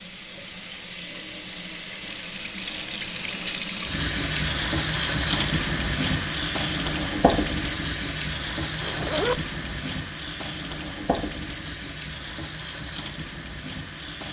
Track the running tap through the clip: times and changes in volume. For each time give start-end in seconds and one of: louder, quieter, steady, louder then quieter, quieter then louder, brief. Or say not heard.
0.0-14.2 louder then quieter.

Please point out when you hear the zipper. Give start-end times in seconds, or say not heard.
8.8-9.4.